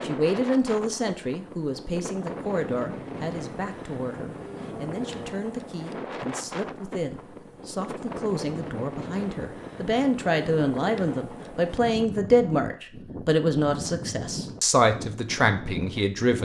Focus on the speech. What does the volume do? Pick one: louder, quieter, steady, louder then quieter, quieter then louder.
quieter then louder.